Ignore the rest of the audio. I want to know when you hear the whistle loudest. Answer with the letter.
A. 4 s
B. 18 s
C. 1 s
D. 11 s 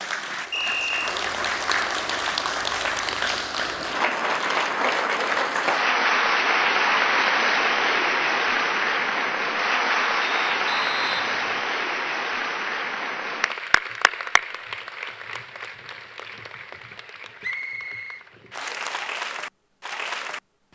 C.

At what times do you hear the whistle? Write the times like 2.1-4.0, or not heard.
0.5-1.2, 10.2-11.7, 17.4-18.7.